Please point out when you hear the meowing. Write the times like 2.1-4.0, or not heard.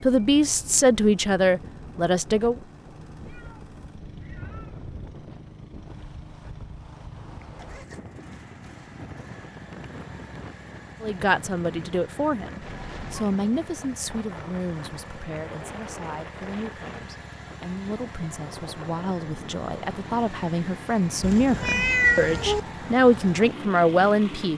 3.1-5.1, 12.6-13.2, 21.2-22.6.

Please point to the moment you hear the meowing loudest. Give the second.
22 s.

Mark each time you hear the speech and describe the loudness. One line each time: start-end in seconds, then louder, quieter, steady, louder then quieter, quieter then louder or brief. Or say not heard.
0.0-2.5 brief
11.0-24.5 quieter then louder.